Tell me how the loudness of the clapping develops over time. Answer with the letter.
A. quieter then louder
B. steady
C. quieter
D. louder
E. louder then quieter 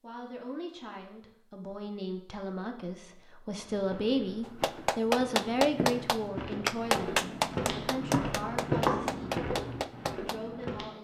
C.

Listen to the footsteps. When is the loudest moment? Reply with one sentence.
The loudest moment of the footsteps is at 9 seconds.